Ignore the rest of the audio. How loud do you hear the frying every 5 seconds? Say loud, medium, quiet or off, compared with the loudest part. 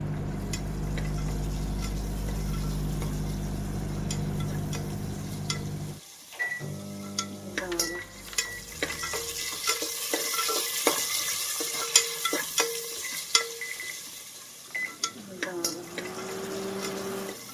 quiet, medium, loud, medium.